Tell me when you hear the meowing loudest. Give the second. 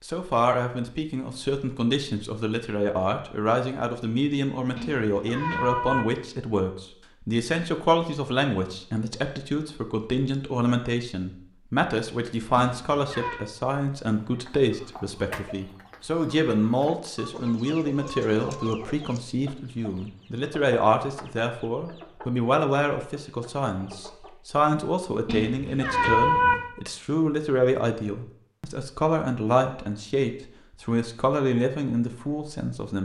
26 s.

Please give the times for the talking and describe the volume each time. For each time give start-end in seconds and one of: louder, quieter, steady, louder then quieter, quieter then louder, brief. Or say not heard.
0.0-33.0 steady.